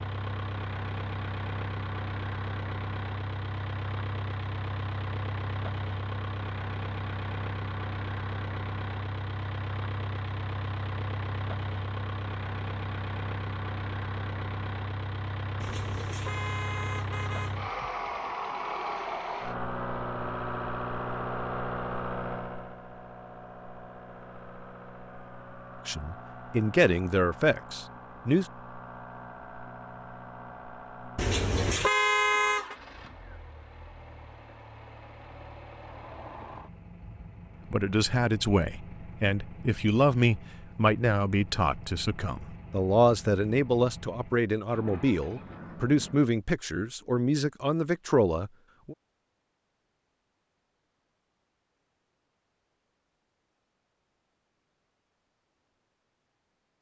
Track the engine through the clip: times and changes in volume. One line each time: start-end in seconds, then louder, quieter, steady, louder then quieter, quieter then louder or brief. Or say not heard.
0.0-46.4 quieter.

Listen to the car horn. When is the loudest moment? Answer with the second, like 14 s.
32 s.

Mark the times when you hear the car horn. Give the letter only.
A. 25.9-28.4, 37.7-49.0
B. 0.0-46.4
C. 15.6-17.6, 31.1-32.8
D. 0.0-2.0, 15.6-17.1
C.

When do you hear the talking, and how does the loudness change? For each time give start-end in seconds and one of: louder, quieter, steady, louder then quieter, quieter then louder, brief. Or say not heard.
25.9-28.4 brief
37.7-49.0 steady.